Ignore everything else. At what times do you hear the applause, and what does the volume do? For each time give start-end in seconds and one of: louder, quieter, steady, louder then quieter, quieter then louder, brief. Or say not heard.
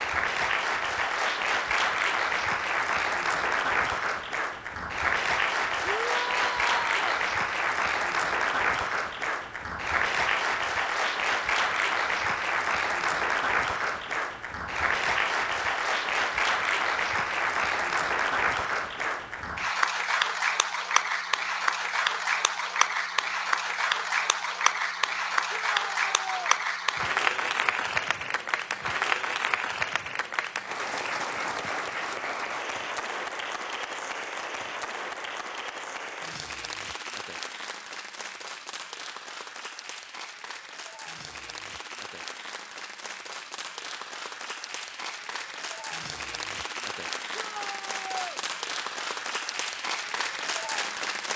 0.0-51.3 quieter.